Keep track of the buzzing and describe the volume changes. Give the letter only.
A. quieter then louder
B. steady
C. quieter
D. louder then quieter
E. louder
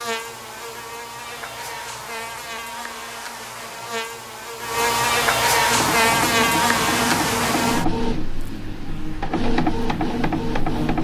D.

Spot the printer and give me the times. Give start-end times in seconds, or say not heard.
5.7-10.9.